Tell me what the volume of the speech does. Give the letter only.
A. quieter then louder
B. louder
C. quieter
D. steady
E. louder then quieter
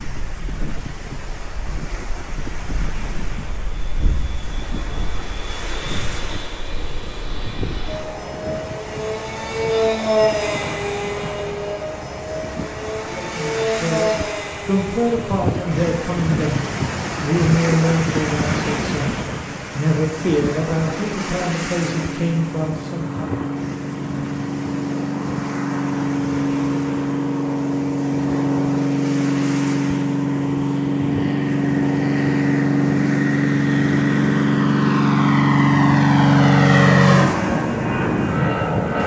D.